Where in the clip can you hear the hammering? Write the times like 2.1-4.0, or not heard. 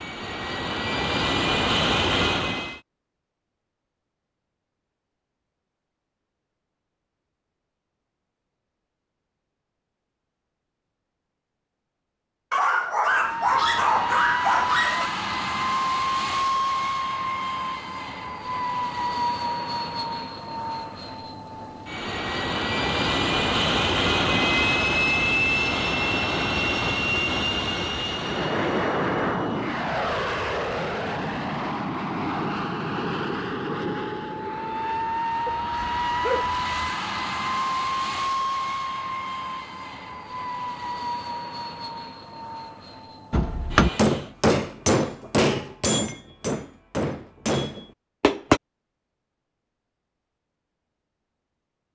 43.3-48.6.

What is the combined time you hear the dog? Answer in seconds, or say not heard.
4 s.